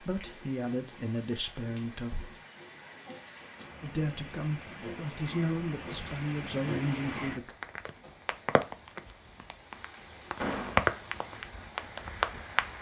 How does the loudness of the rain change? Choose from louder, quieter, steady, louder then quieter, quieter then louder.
louder.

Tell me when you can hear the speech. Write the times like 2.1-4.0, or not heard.
0.0-2.1, 3.8-7.5.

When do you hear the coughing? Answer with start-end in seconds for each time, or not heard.
not heard.